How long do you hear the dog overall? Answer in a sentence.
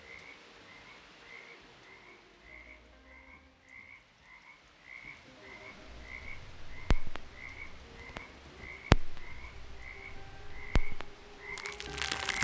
The dog can't be heard in this clip.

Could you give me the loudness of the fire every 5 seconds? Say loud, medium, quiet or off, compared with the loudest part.
off, loud, medium.